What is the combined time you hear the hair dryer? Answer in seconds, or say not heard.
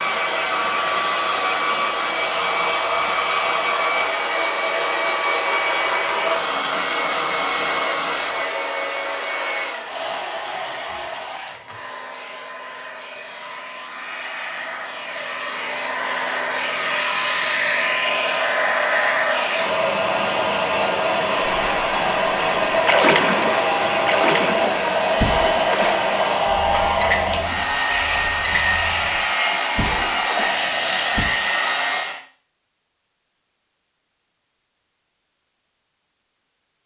32 s.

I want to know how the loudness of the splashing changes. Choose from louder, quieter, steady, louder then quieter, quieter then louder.
quieter.